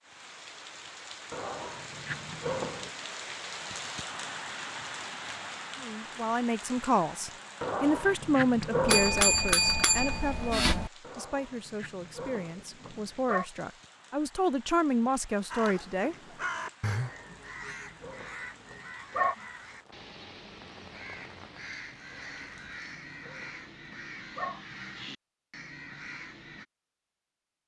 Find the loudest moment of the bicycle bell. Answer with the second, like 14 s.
9 s.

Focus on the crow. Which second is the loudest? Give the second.
17 s.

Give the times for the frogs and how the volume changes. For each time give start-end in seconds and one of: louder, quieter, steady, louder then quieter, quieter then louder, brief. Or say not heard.
not heard.